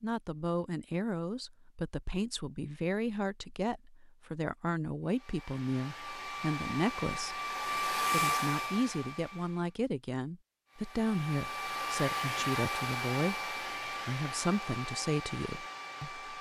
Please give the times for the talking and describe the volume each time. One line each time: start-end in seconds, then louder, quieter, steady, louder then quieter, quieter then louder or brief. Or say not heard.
0.0-16.1 steady.